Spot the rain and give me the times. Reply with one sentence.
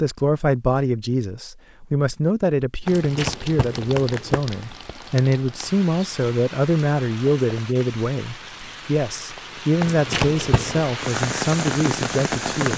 You can hear the rain from 2.9 to 12.7 s.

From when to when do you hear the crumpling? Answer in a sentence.
You can hear the crumpling from 2.9 to 4.4 s and from 9.8 to 10.8 s.